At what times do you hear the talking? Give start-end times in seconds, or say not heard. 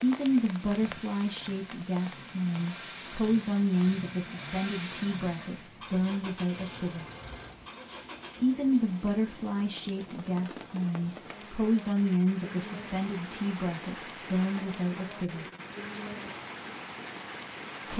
0.0-7.0, 8.4-15.4.